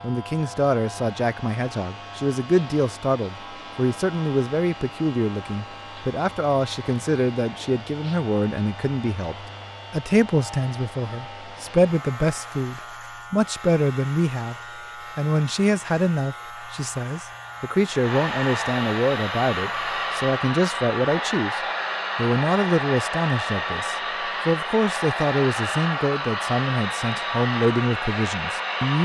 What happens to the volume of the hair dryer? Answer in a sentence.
The loudness of the hair dryer goes up.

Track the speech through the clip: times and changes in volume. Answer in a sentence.
The speech can be heard from 0.0 to 29.0 s, at a steady volume.